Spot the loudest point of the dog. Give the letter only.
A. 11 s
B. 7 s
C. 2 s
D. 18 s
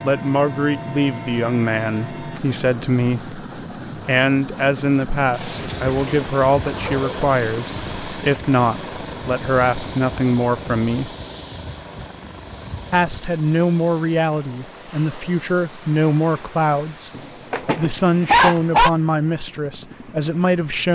D.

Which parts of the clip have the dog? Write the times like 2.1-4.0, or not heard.
5.3-7.2, 17.1-18.9.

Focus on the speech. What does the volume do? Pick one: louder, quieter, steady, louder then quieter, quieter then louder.
steady.